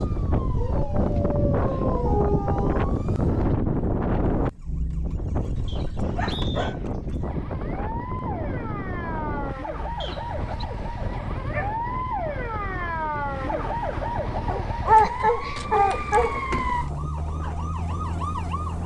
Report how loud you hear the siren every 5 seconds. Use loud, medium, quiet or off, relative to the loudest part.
quiet, medium, loud, loud.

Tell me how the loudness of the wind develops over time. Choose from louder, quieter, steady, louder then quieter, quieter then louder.
quieter.